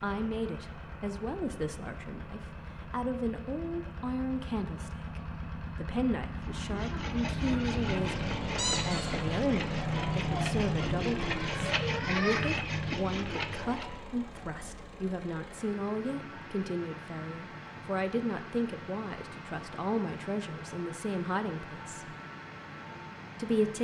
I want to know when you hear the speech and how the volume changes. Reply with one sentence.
You can hear the speech from 0.0 to 22.1 s, at a steady volume; and briefly from 23.4 to 23.8 s.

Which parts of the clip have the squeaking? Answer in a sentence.
The squeaking can be heard from 8.6 to 9.2 s.